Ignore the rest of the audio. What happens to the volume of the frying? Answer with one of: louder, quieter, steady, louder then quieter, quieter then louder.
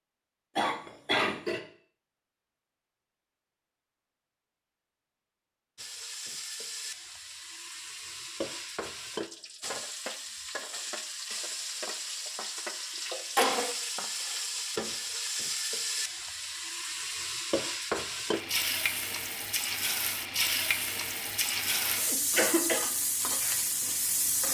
louder.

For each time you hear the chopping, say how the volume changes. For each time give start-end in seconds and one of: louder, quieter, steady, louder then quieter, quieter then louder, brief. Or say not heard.
not heard.